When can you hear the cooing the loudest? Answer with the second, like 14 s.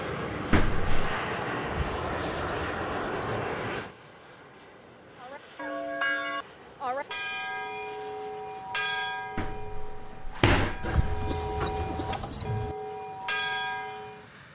12 s.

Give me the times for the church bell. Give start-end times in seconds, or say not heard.
5.2-14.2.